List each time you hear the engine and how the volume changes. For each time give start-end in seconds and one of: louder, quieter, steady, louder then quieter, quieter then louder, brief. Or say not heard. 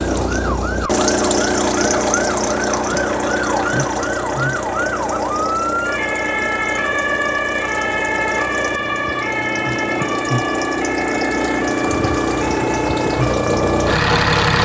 0.0-14.6 quieter then louder.